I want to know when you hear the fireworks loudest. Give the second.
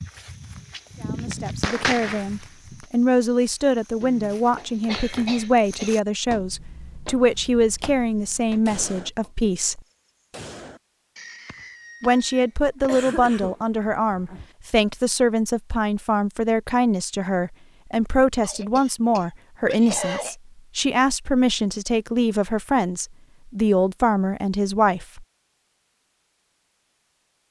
2 s.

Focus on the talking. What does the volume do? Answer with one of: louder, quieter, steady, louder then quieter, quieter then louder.
steady.